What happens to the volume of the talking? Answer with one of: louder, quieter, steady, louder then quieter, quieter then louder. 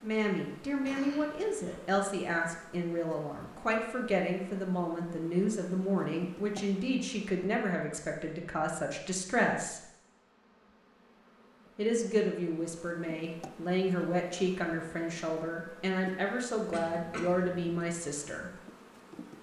steady.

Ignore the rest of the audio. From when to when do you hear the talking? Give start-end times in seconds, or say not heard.
0.0-9.8, 11.8-18.5.